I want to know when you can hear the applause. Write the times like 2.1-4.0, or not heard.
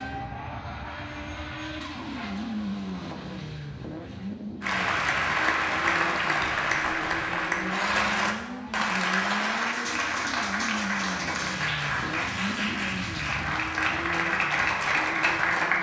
4.6-15.7.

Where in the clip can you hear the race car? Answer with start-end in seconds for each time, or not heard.
0.0-15.7.